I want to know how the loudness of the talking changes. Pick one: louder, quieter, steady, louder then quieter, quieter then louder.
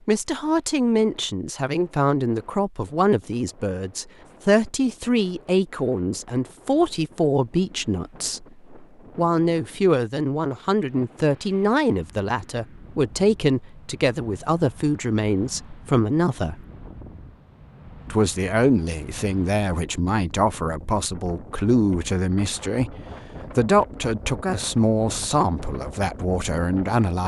steady.